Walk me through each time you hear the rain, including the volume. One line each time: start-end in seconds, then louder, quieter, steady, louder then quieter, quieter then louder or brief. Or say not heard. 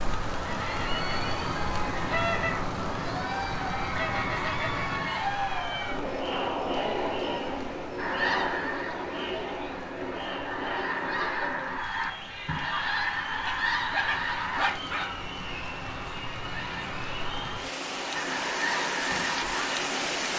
0.0-20.3 quieter then louder.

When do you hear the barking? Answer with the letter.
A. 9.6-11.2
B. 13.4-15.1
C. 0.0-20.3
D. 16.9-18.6
B.